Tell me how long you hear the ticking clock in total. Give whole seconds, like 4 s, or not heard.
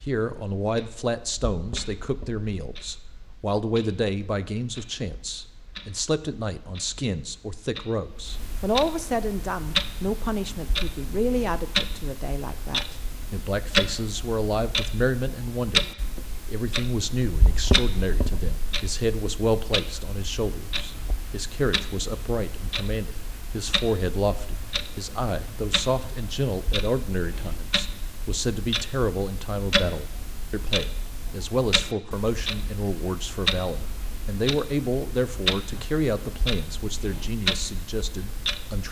39 s.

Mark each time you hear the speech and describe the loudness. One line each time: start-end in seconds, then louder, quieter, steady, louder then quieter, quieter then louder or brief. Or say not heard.
0.1-15.8 steady
16.4-38.8 steady.